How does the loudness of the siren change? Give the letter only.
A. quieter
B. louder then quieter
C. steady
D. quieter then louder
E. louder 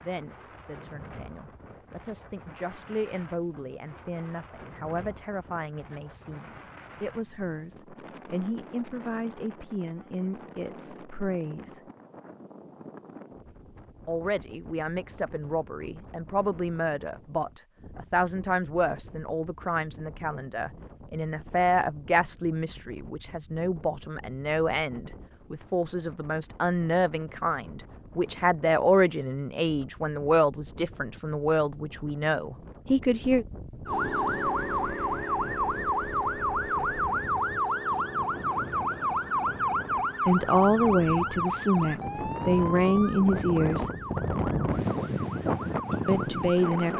A.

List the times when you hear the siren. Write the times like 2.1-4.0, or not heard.
33.9-46.9.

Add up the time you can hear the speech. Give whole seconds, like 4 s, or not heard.
36 s.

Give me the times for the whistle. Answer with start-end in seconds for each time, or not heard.
not heard.